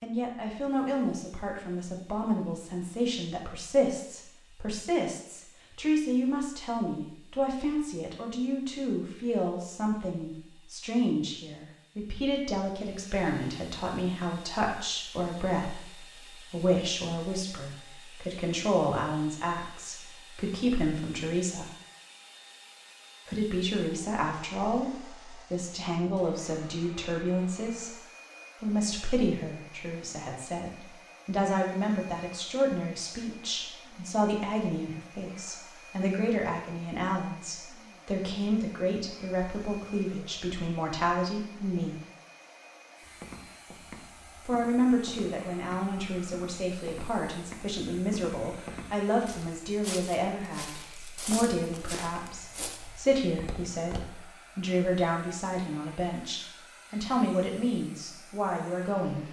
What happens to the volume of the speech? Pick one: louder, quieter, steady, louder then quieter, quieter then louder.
steady.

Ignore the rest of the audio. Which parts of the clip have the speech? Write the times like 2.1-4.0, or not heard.
0.0-21.7, 23.2-27.9, 28.6-42.0, 44.5-59.2.